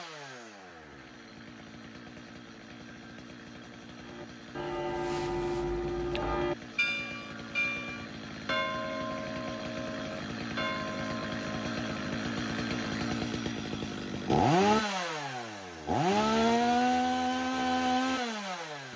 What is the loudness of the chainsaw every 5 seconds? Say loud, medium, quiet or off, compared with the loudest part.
quiet, quiet, loud, loud.